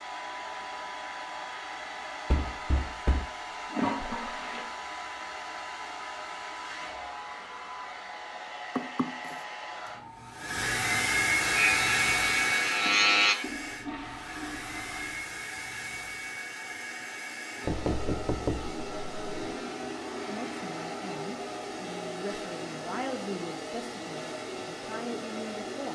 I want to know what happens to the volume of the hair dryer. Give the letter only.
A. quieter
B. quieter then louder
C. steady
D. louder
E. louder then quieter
E.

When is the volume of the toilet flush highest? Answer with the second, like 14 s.
4 s.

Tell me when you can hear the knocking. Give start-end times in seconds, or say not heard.
2.3-3.2, 8.8-9.3, 17.6-19.6.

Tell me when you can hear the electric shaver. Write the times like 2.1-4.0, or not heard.
11.4-13.3.